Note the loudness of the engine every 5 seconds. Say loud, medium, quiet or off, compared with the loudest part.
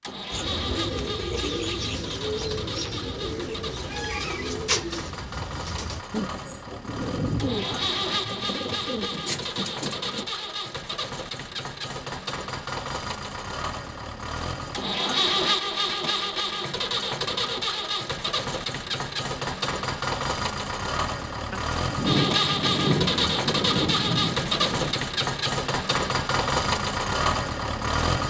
medium, medium, medium, loud, loud, loud.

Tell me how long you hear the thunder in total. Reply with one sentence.
You can hear the thunder for 6 seconds altogether.